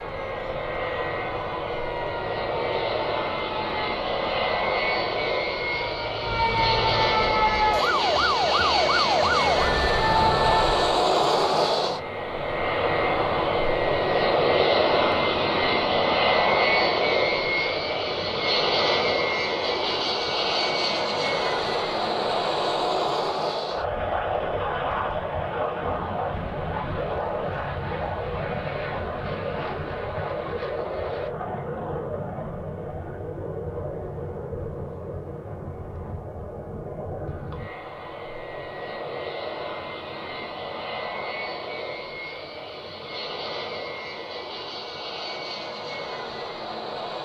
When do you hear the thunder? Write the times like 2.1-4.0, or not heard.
not heard.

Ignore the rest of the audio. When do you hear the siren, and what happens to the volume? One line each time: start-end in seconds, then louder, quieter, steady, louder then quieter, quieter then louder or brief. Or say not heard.
0.0-11.1 louder.